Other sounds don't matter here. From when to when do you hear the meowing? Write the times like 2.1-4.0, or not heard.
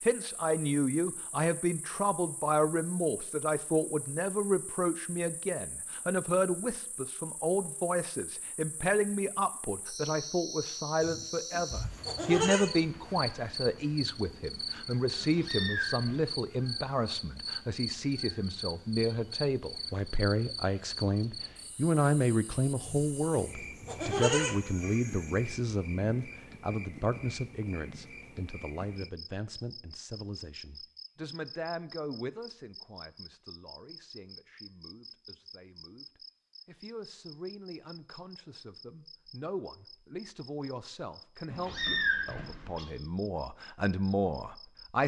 15.2-16.2, 41.5-42.9.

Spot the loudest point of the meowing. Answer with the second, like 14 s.
42 s.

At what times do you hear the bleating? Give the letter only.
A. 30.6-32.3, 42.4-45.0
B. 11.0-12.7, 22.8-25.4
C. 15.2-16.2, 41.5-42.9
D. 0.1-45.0
B.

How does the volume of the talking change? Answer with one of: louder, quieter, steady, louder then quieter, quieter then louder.
quieter.